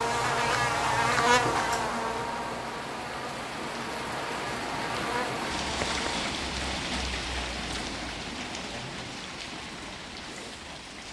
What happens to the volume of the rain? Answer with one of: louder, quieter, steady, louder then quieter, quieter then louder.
louder then quieter.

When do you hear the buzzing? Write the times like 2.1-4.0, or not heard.
0.0-6.2.